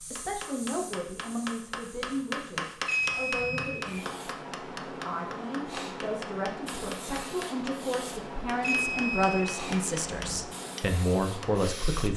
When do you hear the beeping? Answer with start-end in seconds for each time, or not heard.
2.9-4.0, 8.6-10.4.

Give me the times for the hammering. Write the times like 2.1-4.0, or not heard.
0.1-11.7.